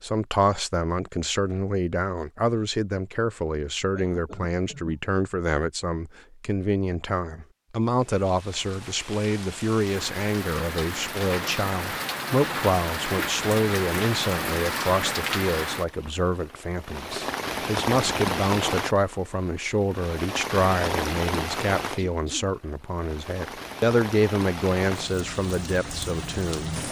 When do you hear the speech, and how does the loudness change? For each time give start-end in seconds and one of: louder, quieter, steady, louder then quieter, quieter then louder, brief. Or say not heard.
0.0-26.8 steady.